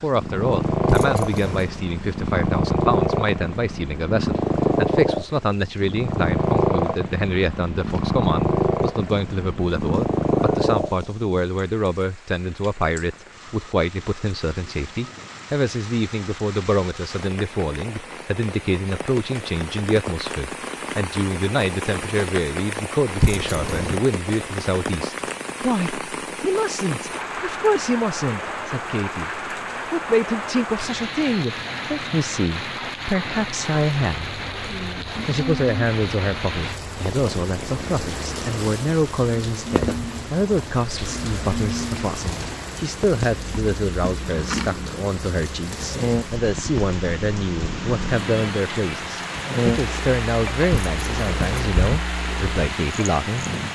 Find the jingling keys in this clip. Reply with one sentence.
You can hear the jingling keys from 0.8 to 1.7 s, from 23.2 to 24.0 s and from 50.7 to 52.0 s.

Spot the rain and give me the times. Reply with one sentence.
You can hear the rain from 0.0 to 53.6 s.